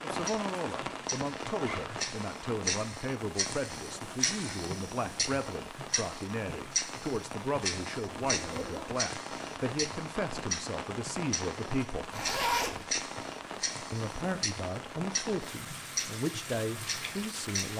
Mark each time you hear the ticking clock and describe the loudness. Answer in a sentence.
The ticking clock can be heard from 0.1 to 17.7 s, at a steady volume.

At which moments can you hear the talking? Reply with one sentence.
You can hear the talking from 0.0 to 12.1 s and from 13.9 to 17.7 s.